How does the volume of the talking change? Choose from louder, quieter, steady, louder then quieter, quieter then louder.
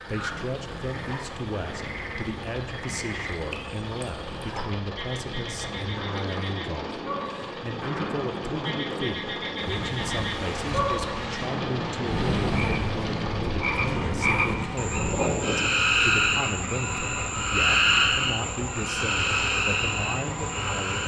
steady.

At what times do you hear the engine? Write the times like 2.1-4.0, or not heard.
0.0-21.0.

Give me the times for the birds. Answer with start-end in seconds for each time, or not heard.
not heard.